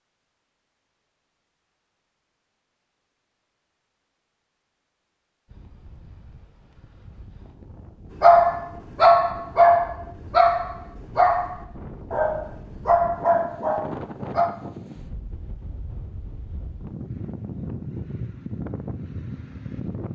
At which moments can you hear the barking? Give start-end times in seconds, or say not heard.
8.2-14.5.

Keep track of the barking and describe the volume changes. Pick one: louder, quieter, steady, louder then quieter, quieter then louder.
quieter.